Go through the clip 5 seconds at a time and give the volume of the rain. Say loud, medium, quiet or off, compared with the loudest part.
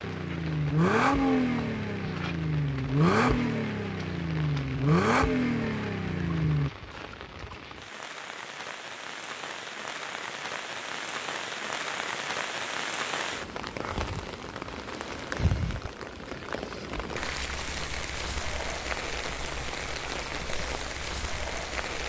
medium, medium, loud, loud, loud.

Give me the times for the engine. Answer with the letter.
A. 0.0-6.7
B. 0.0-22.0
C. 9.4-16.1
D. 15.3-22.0
A.